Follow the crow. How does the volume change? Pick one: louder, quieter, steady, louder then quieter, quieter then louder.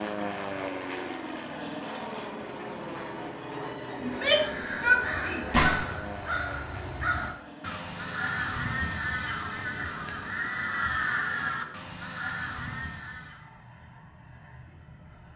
steady.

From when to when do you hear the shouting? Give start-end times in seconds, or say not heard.
4.0-5.5.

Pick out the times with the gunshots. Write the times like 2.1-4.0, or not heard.
5.5-6.0.